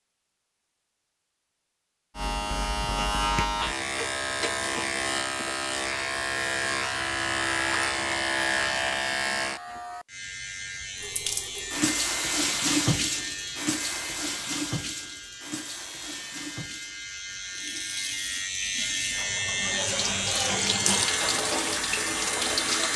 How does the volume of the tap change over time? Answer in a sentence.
The volume of the tap goes down, then up.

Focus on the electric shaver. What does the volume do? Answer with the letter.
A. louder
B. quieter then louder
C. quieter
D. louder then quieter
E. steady
B.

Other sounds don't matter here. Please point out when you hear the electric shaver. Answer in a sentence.
You can hear the electric shaver from 2.1 to 22.9 s.